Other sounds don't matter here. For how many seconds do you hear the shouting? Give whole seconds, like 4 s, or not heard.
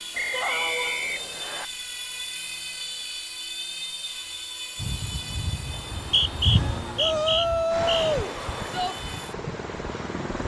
3 s.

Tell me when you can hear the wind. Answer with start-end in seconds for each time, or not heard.
4.8-10.4.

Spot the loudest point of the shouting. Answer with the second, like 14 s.
8 s.